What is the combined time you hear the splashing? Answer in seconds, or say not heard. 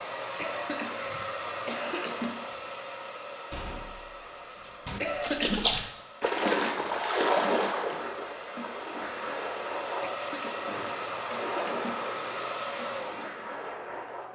9 s.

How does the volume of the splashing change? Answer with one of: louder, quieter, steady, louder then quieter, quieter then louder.
quieter.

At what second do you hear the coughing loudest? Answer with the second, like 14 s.
5 s.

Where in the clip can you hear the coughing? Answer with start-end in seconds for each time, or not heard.
0.3-2.4, 5.0-5.9, 10.0-12.0.